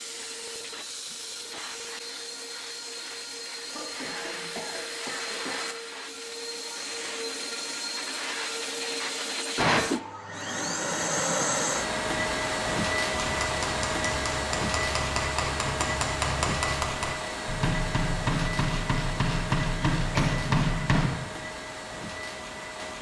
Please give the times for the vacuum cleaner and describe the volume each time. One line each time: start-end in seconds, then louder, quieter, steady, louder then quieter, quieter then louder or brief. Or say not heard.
0.0-22.9 louder then quieter.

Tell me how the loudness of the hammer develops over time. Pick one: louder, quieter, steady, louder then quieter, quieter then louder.
louder.